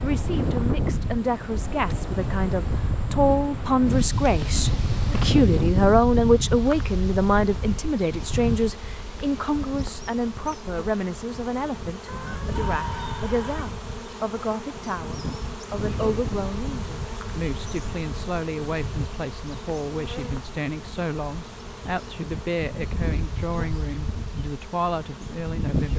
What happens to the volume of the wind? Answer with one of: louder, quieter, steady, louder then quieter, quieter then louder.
quieter.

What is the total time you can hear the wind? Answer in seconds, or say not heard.
26 s.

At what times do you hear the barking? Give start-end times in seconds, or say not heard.
not heard.